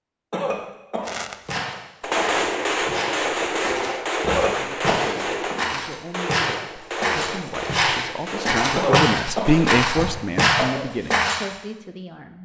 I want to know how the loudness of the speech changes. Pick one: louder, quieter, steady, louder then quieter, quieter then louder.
louder then quieter.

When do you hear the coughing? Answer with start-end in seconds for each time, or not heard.
0.3-2.4, 4.2-5.5, 8.8-10.8.